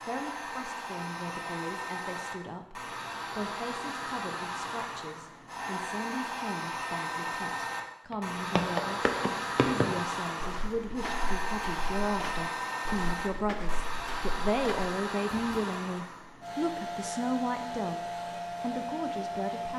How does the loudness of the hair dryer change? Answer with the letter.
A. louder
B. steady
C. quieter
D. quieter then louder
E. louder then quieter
B.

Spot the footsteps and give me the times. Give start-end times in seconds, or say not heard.
8.1-15.6.